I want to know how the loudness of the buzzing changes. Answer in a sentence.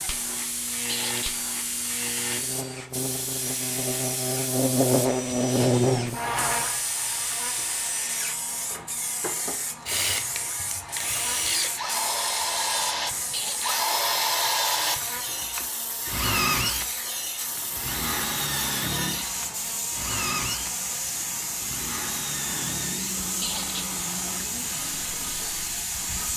The volume of the buzzing goes down.